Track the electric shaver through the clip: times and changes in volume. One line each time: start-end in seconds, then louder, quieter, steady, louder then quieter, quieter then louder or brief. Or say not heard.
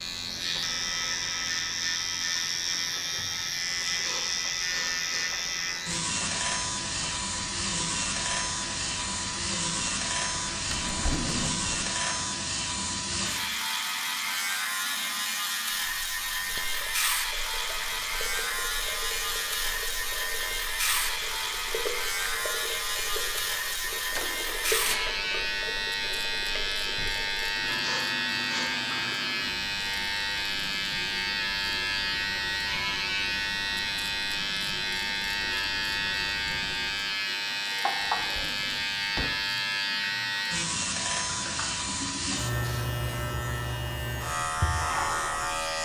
0.0-45.8 steady.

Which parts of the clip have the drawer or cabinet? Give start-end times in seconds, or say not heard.
10.7-11.8, 24.1-25.1, 38.0-39.5.